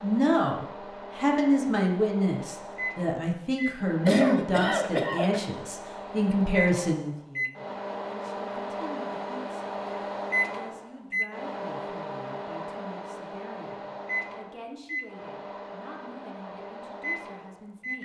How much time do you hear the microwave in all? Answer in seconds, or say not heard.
18 s.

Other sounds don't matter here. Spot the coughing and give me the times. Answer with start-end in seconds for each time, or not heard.
4.0-5.4.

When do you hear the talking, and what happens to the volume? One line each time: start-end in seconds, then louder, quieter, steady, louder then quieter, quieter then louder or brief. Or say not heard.
0.0-9.8 quieter
10.4-17.9 steady.